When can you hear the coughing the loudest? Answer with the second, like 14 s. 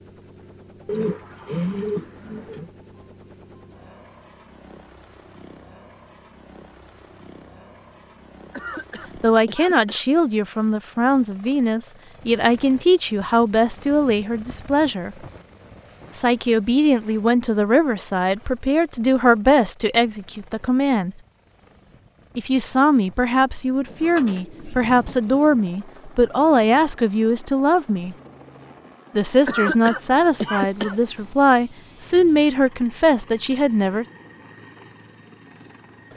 30 s.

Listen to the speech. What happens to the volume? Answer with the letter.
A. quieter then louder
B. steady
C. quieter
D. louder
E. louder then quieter
B.